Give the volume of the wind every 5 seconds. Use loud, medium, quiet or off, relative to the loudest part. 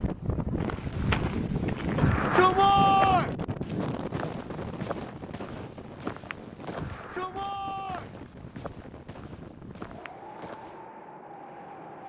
loud, quiet, quiet.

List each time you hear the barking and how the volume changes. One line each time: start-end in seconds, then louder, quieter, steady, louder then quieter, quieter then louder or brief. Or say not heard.
not heard.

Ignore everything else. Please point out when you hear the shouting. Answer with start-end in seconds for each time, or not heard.
1.9-3.4, 6.8-8.2.